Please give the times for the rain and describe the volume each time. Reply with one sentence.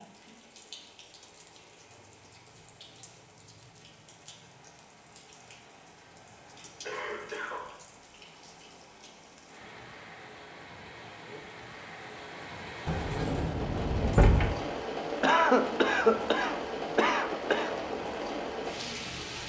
The rain can be heard from 0.0 to 19.4 s, getting louder.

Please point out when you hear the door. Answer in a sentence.
You can hear the door from 12.8 to 14.6 s.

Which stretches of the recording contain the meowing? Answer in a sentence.
The meowing can't be heard in this clip.